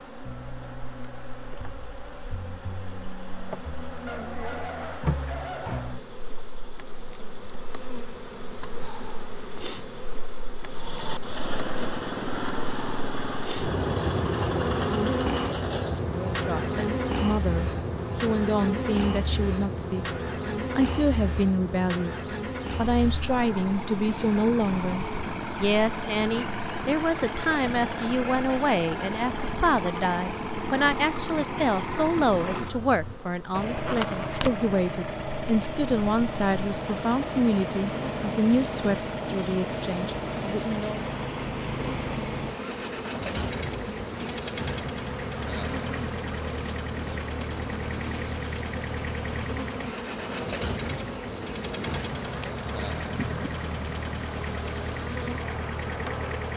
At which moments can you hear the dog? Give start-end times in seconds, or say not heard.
4.0-6.0.